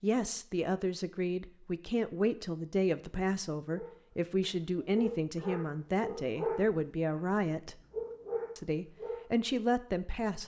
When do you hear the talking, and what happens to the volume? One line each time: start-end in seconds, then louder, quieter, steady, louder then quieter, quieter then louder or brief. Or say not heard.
0.0-7.8 steady
8.6-10.4 brief.